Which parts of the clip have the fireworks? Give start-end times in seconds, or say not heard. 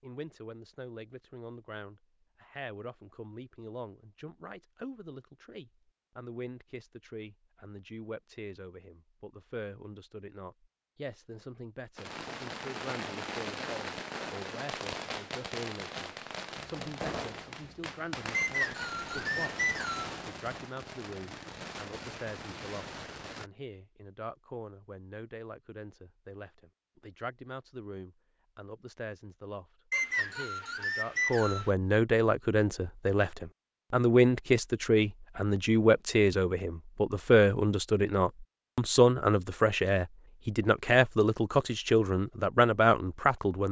11.9-23.5.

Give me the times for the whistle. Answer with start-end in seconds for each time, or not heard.
18.3-20.1, 29.9-31.7.